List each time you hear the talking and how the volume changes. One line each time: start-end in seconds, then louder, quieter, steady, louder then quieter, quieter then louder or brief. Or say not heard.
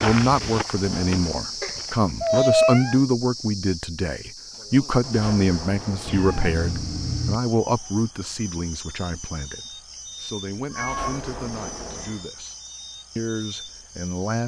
0.0-12.6 quieter
13.2-14.4 brief.